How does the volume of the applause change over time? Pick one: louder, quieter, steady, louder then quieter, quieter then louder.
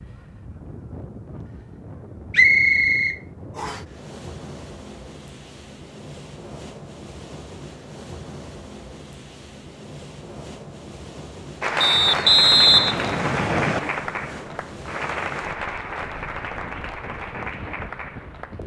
quieter.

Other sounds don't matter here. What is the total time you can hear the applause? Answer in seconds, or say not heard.
7 s.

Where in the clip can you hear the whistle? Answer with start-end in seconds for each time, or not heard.
2.3-3.8, 11.8-13.8.